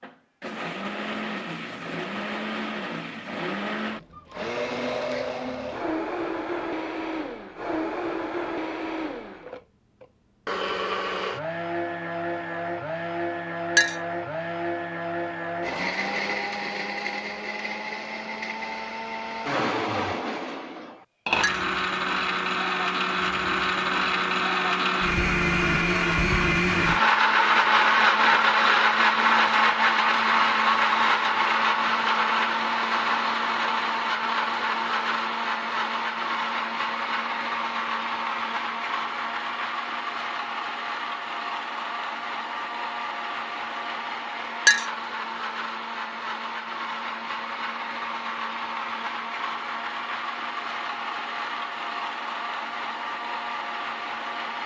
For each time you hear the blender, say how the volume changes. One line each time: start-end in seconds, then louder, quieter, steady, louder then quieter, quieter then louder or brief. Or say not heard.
0.0-54.6 louder then quieter.